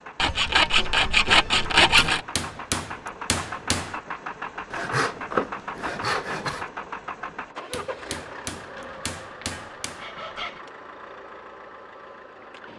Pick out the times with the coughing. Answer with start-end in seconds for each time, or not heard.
not heard.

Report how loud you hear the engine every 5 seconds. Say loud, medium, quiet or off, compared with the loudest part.
loud, loud, medium.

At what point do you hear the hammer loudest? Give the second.
3 s.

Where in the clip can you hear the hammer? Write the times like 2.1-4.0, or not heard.
1.9-4.0, 7.7-10.2.